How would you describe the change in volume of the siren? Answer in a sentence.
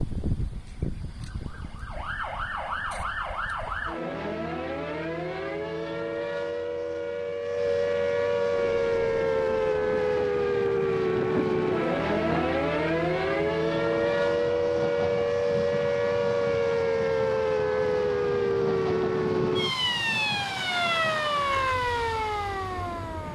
The loudness of the siren goes up.